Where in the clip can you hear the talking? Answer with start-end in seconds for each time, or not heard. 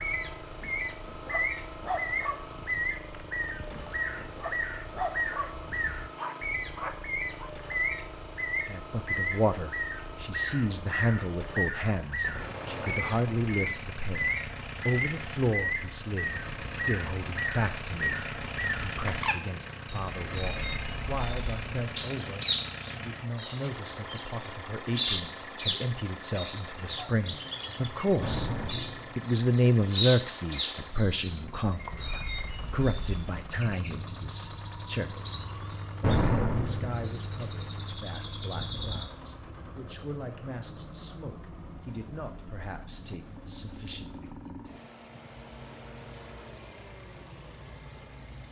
8.7-28.5, 29.1-44.7.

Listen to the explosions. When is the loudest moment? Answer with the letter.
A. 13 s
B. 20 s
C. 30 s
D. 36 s
D.